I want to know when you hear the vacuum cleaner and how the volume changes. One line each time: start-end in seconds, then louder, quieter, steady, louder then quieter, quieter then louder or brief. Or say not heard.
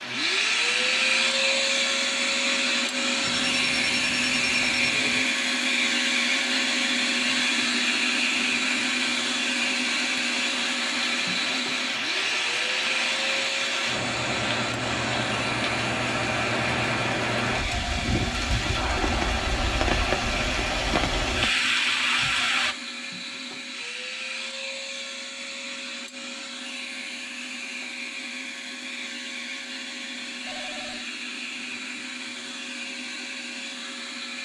0.0-34.4 quieter.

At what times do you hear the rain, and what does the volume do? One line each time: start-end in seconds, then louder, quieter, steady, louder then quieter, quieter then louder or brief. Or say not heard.
0.0-22.8 louder.